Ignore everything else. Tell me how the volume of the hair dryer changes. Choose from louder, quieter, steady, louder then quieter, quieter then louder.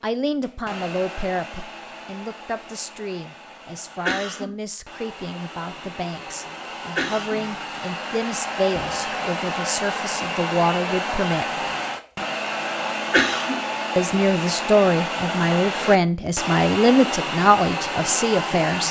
louder.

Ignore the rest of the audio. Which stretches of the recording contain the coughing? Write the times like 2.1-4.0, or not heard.
4.0-4.5, 7.0-7.4, 13.1-13.6.